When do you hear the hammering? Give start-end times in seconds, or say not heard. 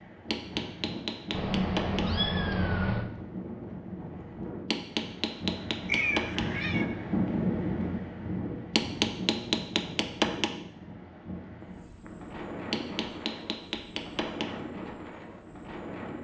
0.3-2.1, 4.7-6.5, 8.8-10.6, 12.7-14.6.